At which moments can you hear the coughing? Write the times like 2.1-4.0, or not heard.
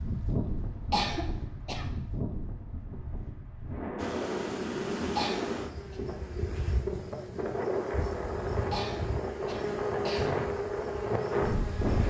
0.9-1.9, 5.2-6.0, 8.7-10.3.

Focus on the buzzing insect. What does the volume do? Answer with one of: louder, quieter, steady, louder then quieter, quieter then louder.
quieter then louder.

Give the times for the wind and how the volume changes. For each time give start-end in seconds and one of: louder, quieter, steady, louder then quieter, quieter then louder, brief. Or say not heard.
0.0-12.0 louder.